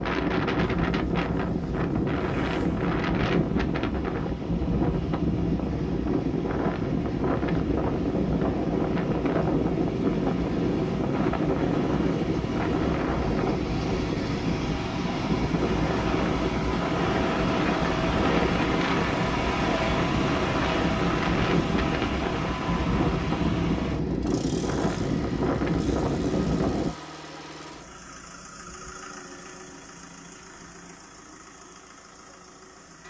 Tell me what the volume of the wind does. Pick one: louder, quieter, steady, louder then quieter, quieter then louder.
steady.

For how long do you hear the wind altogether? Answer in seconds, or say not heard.
27 s.